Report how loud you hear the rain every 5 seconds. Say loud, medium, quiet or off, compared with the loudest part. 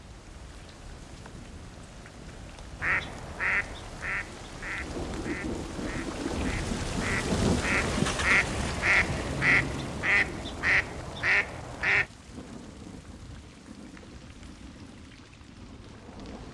quiet, loud, quiet, quiet.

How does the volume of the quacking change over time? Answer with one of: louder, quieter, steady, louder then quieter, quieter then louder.
quieter then louder.